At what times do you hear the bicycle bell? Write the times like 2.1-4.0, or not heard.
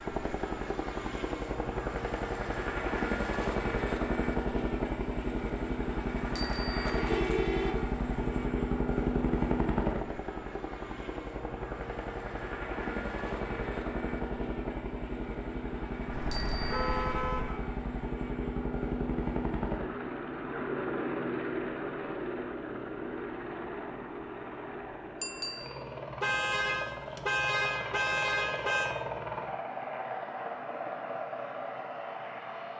6.3-7.0, 16.3-17.1, 25.2-25.9.